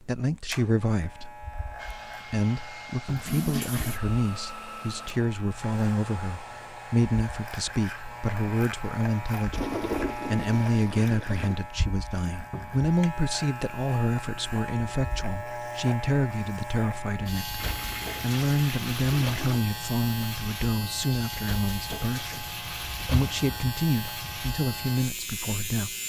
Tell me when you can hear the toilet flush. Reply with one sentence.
The toilet flush can be heard from 3.2 to 4.0 s, from 9.5 to 11.6 s and from 17.6 to 19.6 s.